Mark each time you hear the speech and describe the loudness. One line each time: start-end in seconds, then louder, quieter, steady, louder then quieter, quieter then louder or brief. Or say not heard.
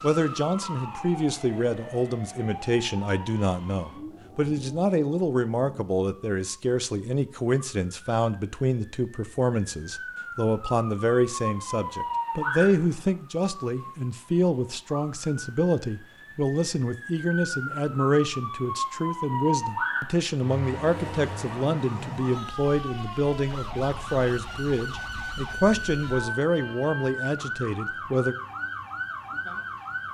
0.0-28.4 steady.